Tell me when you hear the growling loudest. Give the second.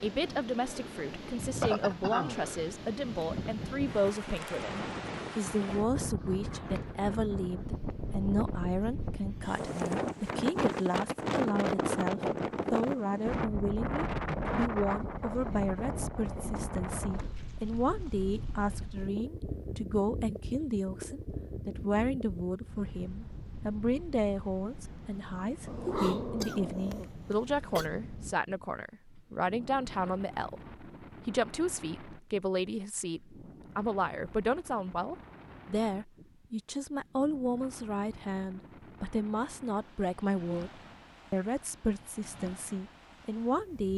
26 s.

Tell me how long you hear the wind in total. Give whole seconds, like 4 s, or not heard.
44 s.